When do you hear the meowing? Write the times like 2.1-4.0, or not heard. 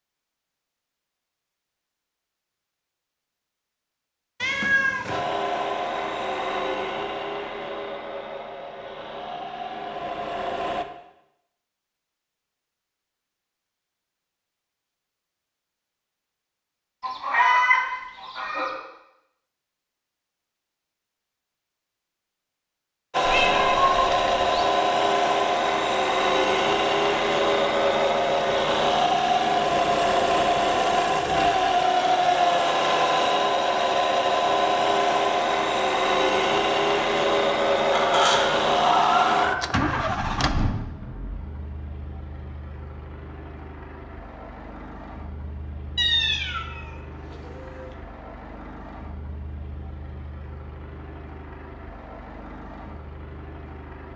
4.4-5.2, 23.2-24.6, 46.0-48.0.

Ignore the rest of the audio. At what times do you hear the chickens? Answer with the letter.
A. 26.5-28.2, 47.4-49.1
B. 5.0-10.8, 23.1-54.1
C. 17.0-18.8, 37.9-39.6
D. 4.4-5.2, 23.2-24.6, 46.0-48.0
C.